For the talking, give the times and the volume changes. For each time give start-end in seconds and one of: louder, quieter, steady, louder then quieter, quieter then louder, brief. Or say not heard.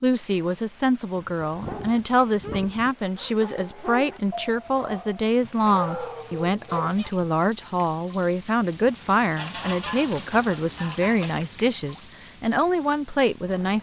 0.0-13.7 steady.